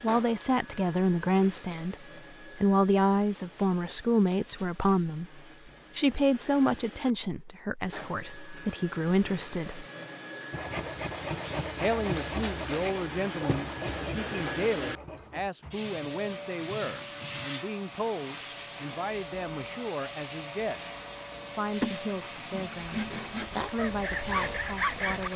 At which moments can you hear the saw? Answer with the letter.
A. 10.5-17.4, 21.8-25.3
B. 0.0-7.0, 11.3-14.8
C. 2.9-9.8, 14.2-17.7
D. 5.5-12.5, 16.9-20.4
A.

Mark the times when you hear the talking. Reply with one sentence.
The talking can be heard from 0.0 to 1.9 s, from 2.5 to 9.8 s, from 11.8 to 20.9 s and from 21.6 to 25.3 s.